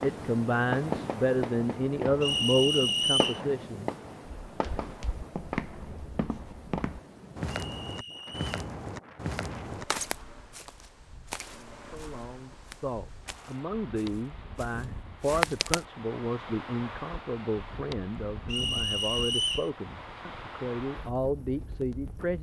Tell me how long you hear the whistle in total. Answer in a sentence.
The whistle can be heard for 3 seconds in total.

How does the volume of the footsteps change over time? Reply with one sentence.
The loudness of the footsteps goes down.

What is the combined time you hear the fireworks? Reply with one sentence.
You can hear the fireworks for 7 seconds altogether.